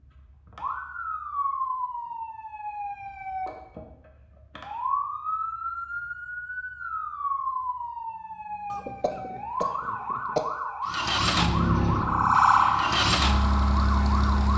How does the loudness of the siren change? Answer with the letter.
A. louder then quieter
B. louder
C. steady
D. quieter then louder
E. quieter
B.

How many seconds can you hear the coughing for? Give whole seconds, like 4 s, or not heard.
2 s.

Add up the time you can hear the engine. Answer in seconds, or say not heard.
4 s.